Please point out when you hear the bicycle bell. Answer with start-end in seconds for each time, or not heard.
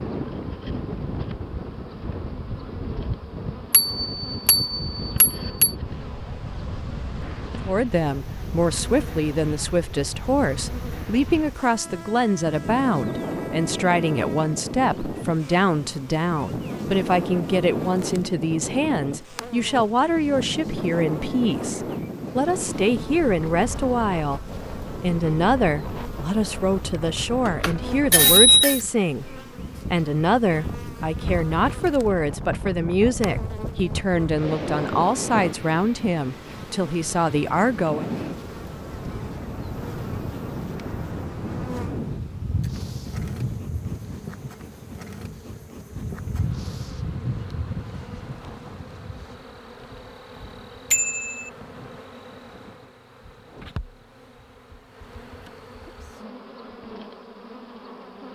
3.7-5.8, 27.4-28.8, 50.9-51.5.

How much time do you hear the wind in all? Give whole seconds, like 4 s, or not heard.
49 s.